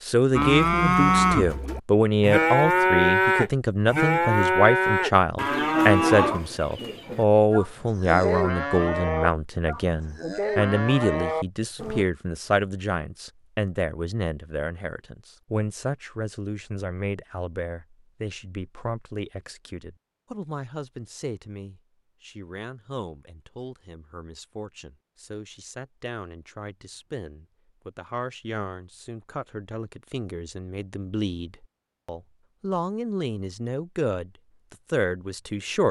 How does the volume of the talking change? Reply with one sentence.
The volume of the talking goes down, then up.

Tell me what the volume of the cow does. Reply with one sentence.
The loudness of the cow goes down.